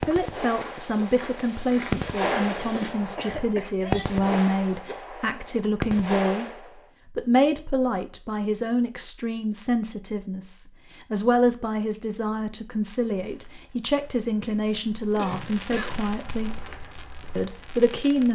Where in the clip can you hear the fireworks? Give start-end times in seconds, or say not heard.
0.0-6.8, 15.2-18.2.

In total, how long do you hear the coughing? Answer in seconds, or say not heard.
3 s.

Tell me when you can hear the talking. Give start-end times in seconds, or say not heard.
0.0-6.5, 7.0-16.6, 17.4-18.2.